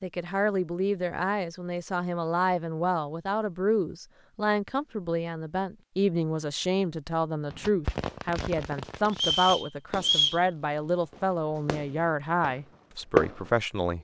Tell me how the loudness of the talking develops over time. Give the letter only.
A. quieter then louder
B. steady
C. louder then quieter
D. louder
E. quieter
B.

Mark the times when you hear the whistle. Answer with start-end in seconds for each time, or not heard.
9.1-10.4.